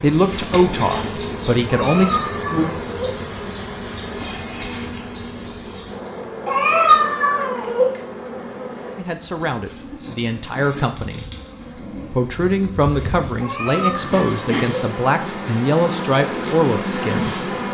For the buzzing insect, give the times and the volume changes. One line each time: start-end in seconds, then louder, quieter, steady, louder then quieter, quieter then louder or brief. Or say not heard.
0.0-17.6 quieter then louder.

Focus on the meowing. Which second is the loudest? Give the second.
7 s.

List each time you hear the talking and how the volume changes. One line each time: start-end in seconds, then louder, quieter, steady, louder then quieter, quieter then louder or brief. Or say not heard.
0.0-2.2 brief
8.9-11.2 brief
12.1-17.6 steady.